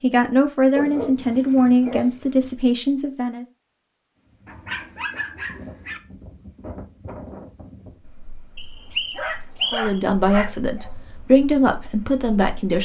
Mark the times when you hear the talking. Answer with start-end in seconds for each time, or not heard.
0.0-3.5, 9.7-12.8.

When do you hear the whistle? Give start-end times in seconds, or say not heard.
8.6-10.0.